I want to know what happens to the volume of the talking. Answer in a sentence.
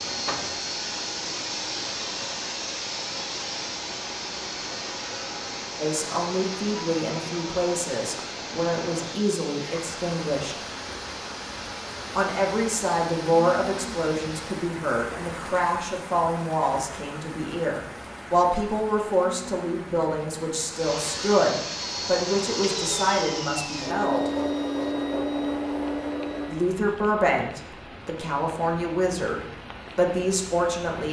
The loudness of the talking stays about the same.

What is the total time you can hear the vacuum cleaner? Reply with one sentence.
You can hear the vacuum cleaner for 21 seconds altogether.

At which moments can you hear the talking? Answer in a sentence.
You can hear the talking from 5.8 to 10.6 s, from 12.1 to 24.3 s and from 26.4 to 31.0 s.